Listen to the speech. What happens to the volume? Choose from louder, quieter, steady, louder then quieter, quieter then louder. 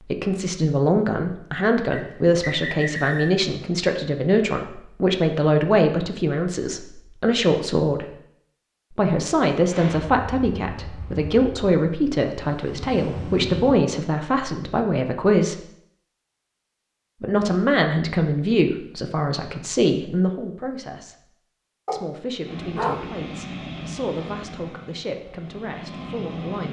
quieter.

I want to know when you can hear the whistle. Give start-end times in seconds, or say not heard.
1.9-3.4.